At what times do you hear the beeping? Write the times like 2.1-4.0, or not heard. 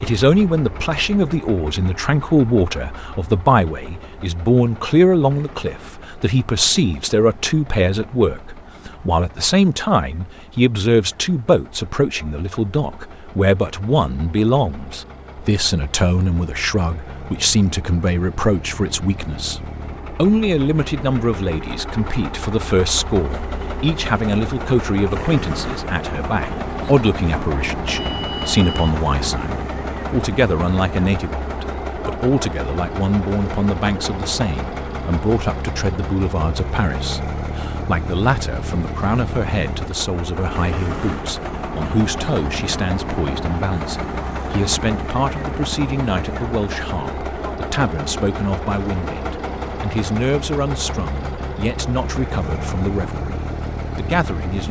27.9-29.0.